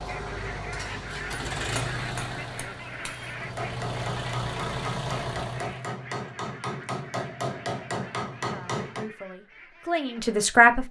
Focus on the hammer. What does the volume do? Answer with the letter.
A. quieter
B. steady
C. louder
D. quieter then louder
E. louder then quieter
C.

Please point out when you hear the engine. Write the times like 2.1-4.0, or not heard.
0.0-5.9.